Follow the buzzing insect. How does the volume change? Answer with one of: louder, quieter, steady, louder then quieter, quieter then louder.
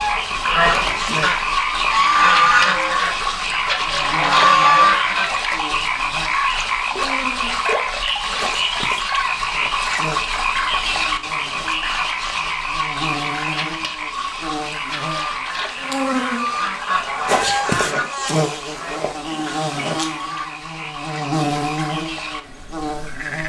louder.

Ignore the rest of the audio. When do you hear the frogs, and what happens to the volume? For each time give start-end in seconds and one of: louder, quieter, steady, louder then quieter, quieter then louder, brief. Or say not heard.
0.0-23.4 quieter.